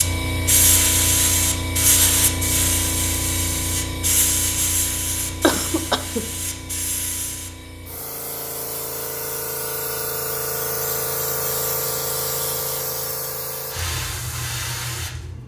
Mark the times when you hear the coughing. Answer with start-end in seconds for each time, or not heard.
5.4-6.2.